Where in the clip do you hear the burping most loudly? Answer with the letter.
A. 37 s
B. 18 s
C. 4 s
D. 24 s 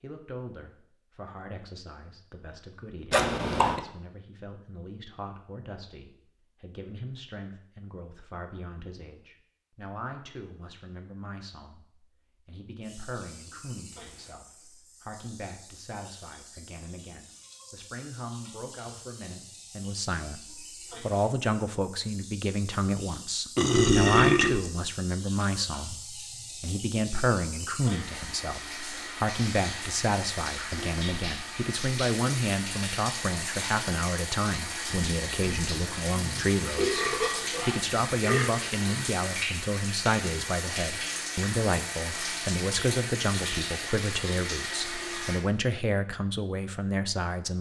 D.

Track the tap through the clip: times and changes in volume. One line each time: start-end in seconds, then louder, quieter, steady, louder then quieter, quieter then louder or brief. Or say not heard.
12.8-45.4 louder.